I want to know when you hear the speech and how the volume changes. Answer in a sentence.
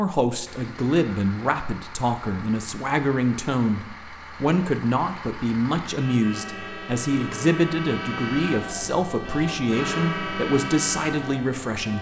You can hear the speech from 0.0 to 11.9 s, at a steady volume.